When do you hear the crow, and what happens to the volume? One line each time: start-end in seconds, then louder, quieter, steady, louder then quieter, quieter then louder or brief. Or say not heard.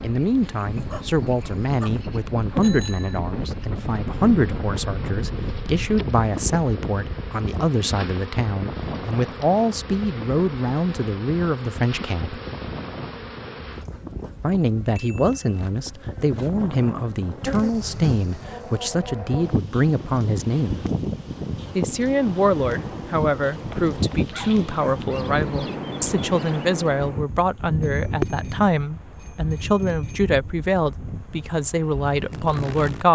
not heard.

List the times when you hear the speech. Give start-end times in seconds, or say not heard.
0.0-12.4, 14.4-20.9, 21.8-33.1.